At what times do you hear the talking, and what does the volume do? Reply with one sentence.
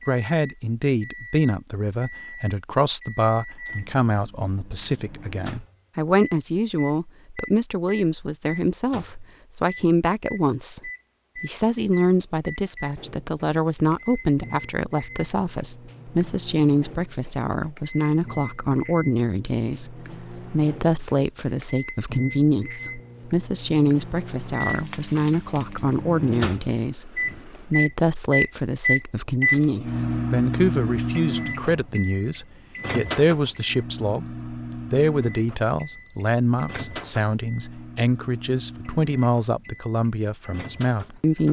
You can hear the talking from 0.1 to 41.4 s, at a steady volume.